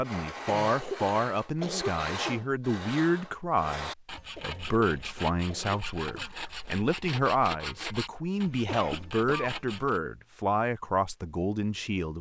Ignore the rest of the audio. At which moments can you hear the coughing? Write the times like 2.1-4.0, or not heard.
0.5-2.5, 4.3-6.3, 8.5-9.6.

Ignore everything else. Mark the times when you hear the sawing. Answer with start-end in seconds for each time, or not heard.
0.0-10.0.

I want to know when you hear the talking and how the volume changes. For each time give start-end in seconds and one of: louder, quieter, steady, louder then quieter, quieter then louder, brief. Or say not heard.
0.0-12.1 steady.